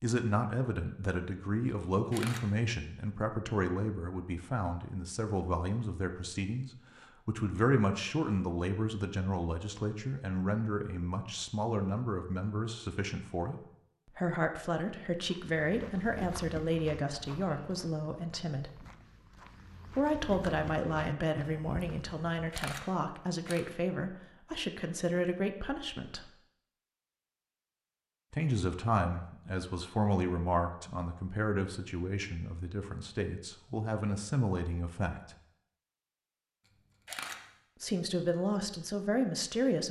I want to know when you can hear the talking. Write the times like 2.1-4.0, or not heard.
0.0-18.8, 19.9-26.3, 28.3-35.4, 37.8-39.8.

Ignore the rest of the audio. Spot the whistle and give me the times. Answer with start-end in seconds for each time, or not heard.
not heard.